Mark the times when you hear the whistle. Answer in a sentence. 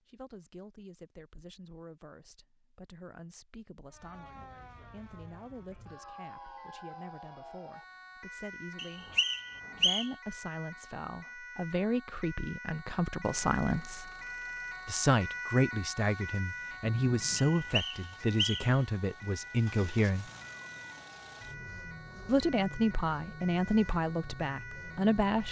The whistle can be heard from 8.8 to 10.1 s and from 17.6 to 18.8 s.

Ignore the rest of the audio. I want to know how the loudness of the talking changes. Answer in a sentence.
The loudness of the talking goes up.